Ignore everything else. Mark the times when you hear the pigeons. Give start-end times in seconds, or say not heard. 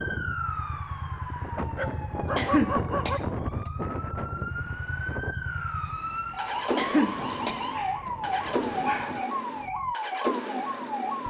not heard.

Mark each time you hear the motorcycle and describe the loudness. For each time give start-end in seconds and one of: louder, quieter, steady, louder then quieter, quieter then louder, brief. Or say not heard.
0.0-11.2 louder.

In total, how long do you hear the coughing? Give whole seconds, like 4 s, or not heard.
3 s.